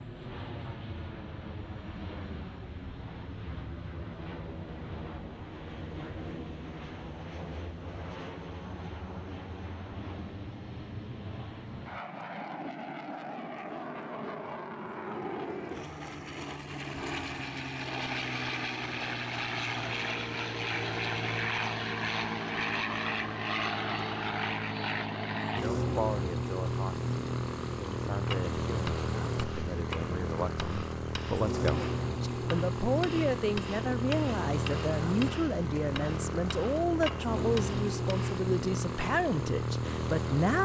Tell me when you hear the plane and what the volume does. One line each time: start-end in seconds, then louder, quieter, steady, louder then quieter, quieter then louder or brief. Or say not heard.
0.0-40.5 louder.